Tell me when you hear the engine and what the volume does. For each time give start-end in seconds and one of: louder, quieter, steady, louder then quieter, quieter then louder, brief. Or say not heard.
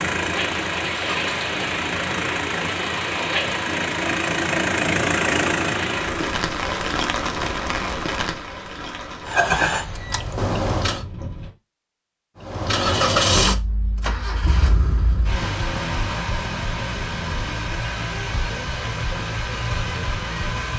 0.0-6.5 louder
9.2-11.1 brief
12.3-20.7 quieter.